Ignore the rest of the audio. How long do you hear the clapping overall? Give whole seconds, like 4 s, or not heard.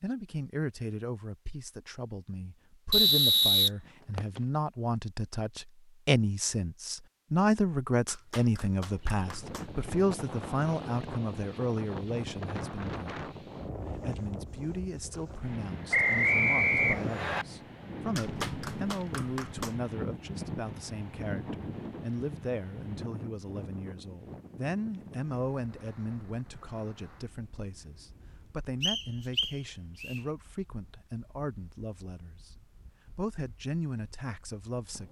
3 s.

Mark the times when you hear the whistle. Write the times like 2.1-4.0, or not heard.
2.9-4.4, 15.9-17.4, 28.8-30.2.